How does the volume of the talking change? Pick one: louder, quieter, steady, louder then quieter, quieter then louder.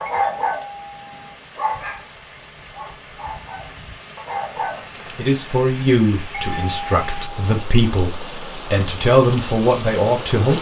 quieter then louder.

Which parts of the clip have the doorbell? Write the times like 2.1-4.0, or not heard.
0.1-1.4, 6.3-7.7.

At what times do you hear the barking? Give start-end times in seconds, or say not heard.
0.0-0.7, 1.6-2.1, 2.7-4.8.